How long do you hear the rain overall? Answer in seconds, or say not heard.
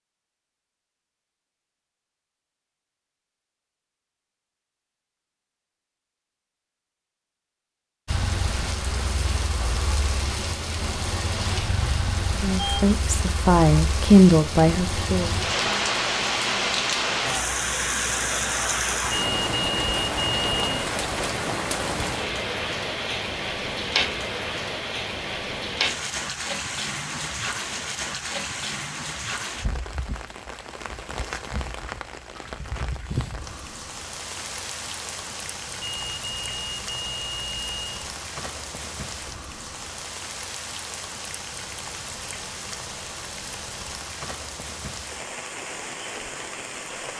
39 s.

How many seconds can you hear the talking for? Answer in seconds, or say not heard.
3 s.